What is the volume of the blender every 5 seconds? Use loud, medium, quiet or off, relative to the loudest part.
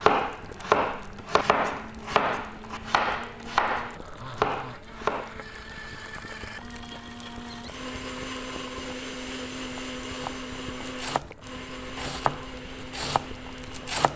medium, loud, loud.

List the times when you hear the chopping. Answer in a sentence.
You can hear the chopping from 0.0 to 5.3 s and from 10.1 to 14.1 s.